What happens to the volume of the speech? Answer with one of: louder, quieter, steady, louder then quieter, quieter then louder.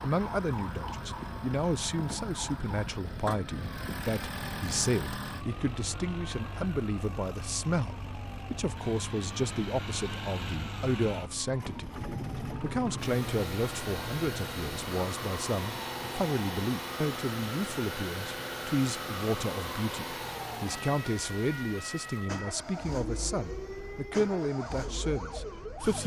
steady.